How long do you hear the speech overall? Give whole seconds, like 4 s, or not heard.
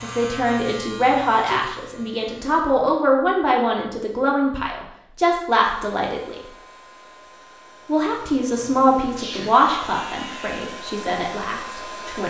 11 s.